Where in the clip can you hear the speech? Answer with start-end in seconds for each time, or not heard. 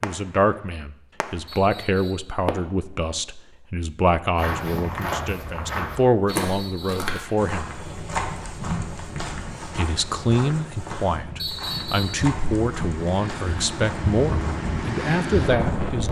0.0-7.7, 9.8-16.0.